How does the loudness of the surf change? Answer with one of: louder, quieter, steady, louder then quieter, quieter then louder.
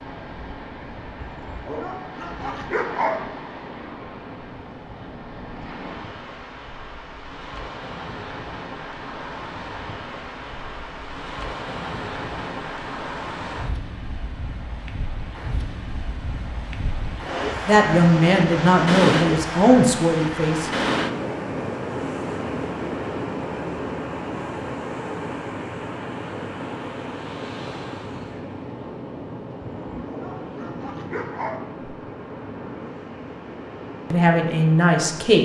louder then quieter.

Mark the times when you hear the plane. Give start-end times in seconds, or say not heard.
not heard.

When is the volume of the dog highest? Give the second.
3 s.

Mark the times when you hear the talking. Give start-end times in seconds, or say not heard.
17.6-20.7, 34.1-35.4.